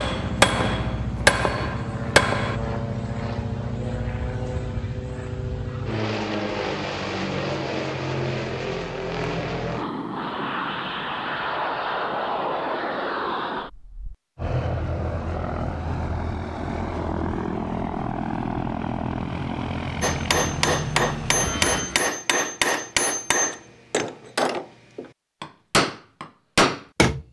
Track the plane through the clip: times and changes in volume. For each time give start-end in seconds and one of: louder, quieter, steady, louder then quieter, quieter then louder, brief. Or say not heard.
0.0-22.1 steady.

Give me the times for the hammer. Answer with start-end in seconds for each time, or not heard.
0.0-2.6, 20.0-27.2.